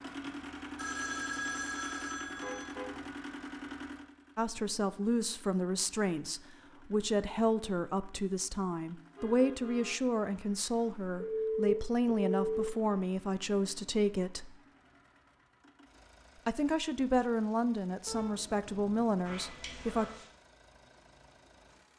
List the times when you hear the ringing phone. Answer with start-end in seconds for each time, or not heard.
0.8-2.7, 11.2-12.3, 19.2-20.2.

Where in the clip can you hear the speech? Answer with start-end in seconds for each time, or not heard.
4.3-14.6, 16.4-20.1.